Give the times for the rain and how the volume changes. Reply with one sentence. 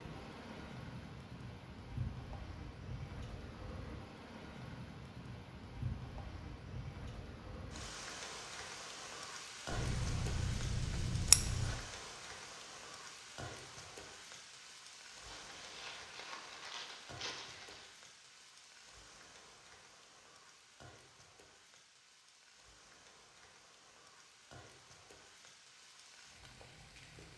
You can hear the rain from 0.0 to 27.3 s, getting quieter.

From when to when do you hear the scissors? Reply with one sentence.
The scissors can be heard from 9.7 to 11.8 s.